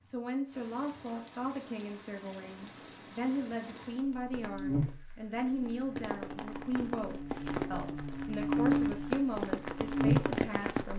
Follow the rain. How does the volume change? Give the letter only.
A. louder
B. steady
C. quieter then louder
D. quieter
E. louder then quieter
A.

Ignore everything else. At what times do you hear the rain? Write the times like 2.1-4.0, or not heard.
0.0-10.9.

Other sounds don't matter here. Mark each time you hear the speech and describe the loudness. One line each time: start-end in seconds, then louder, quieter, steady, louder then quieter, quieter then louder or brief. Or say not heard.
0.0-10.9 steady.